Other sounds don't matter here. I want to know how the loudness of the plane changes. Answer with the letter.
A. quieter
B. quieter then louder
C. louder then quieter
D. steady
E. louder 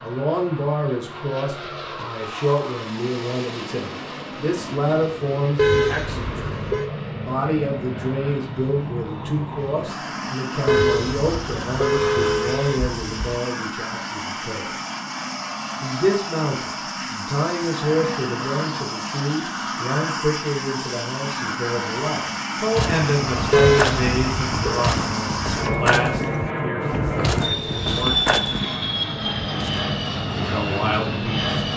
E.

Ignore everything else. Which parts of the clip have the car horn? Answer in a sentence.
You can hear the car horn from 5.5 to 6.9 s, from 10.7 to 13.4 s and from 23.5 to 24.8 s.